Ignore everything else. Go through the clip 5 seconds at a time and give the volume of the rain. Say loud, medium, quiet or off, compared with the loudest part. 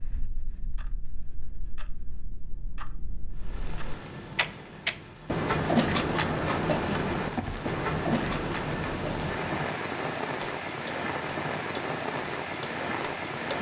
medium, loud, loud.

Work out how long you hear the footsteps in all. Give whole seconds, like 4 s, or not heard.
not heard.